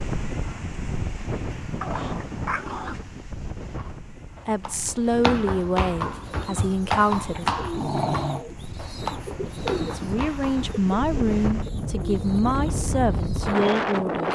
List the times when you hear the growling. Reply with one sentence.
The growling can be heard from 1.8 to 3.0 s and from 7.3 to 8.5 s.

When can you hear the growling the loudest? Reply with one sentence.
The volume of the growling peaks at 8 seconds.